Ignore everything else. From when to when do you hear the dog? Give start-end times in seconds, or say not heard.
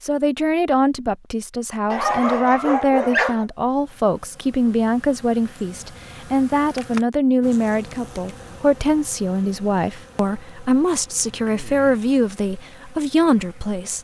1.9-3.5.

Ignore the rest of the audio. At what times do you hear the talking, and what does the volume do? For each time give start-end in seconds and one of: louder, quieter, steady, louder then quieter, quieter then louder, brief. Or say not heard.
0.0-13.9 steady.